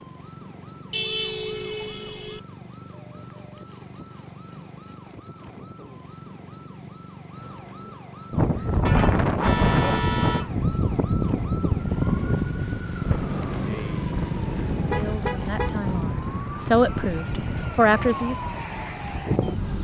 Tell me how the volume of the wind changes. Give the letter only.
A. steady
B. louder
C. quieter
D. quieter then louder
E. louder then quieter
C.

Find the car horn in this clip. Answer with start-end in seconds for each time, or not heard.
0.9-2.4, 8.8-10.5, 14.7-15.8.